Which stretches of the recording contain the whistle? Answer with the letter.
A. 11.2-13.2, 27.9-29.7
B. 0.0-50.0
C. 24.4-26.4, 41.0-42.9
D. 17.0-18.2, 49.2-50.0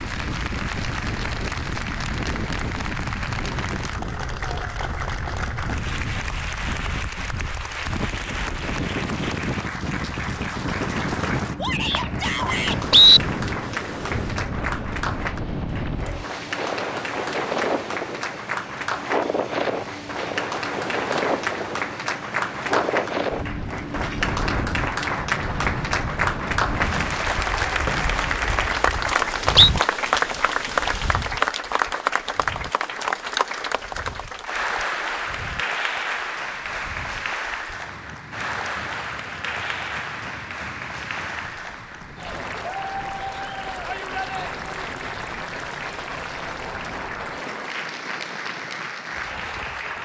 A.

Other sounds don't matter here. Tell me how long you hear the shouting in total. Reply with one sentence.
You can hear the shouting for 2 seconds altogether.